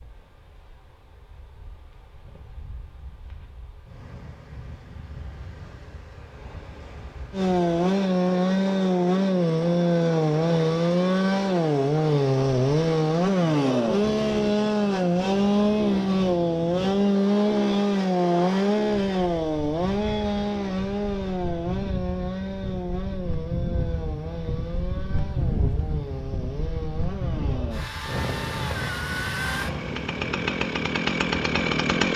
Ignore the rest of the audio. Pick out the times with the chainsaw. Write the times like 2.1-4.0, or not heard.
7.3-32.1.